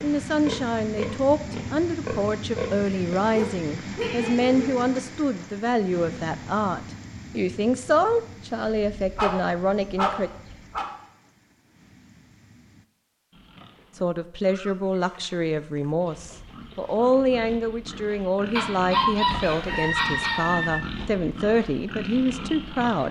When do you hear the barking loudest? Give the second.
19 s.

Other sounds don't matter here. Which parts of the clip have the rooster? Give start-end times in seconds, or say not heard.
19.4-20.8.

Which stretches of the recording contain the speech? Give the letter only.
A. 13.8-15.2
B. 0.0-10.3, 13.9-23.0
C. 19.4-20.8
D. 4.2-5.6
B.